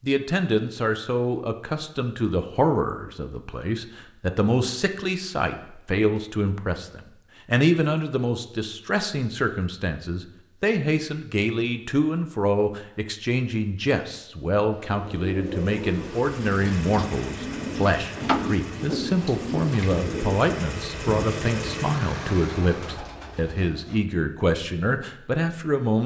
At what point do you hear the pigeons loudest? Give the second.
18 s.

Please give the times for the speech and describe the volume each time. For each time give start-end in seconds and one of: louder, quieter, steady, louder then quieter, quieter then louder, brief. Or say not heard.
0.0-26.0 steady.